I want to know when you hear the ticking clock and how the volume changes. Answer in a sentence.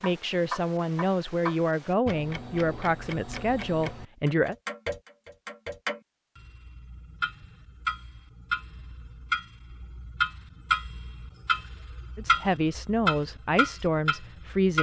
The ticking clock can be heard from 0.0 to 14.7 s, getting louder.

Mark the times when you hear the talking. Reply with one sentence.
The talking can be heard from 0.0 to 4.5 s and from 12.2 to 14.7 s.